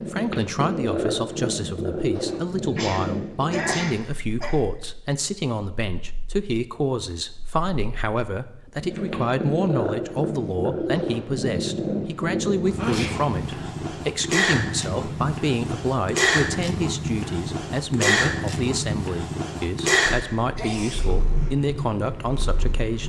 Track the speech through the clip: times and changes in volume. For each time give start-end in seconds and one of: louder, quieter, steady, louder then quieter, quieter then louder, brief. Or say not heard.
0.0-23.0 steady.